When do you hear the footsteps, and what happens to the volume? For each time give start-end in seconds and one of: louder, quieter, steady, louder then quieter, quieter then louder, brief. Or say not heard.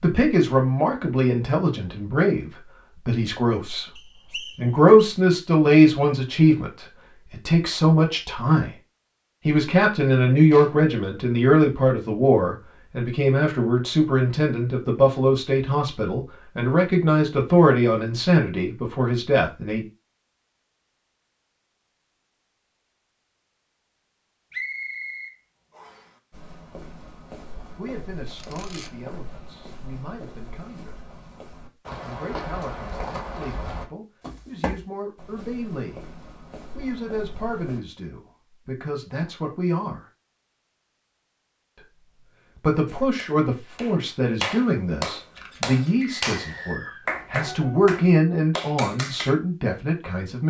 26.3-37.8 louder then quieter.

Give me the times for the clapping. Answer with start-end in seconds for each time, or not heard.
42.6-49.4.